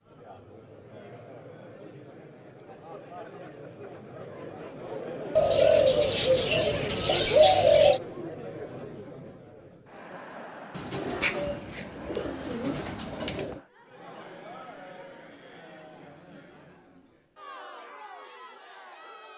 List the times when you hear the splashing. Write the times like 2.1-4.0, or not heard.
not heard.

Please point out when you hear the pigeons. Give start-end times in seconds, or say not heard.
5.3-8.0, 10.7-13.6.